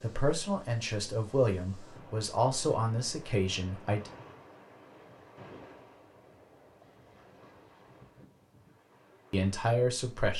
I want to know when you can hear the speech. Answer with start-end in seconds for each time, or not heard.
0.0-4.1, 9.3-10.3.